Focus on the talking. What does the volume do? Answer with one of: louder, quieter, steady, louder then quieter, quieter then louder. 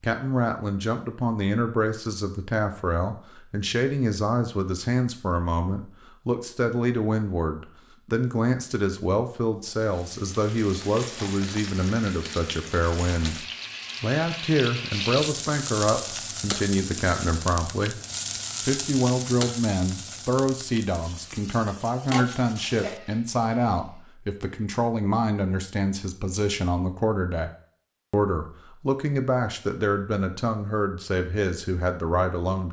steady.